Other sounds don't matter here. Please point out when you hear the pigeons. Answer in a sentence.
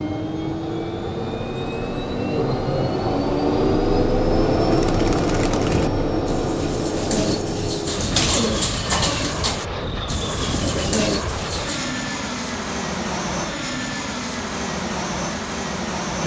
You can hear the pigeons from 4.6 to 11.9 s.